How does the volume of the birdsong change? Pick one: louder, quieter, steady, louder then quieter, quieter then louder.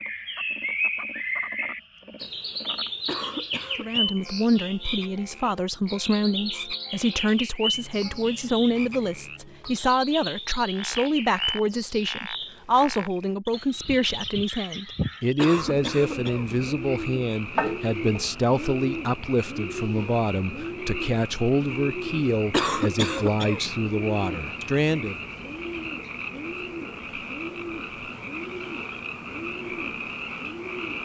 quieter.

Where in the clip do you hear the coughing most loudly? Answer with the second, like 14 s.
23 s.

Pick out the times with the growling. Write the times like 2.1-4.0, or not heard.
17.6-18.3.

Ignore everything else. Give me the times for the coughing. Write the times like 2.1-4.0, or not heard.
3.0-4.3, 15.3-16.6, 22.5-23.7.